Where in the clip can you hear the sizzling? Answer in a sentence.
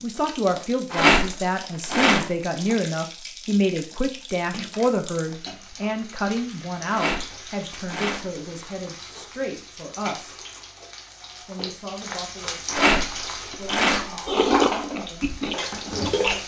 You can hear the sizzling from 0.0 to 16.4 s.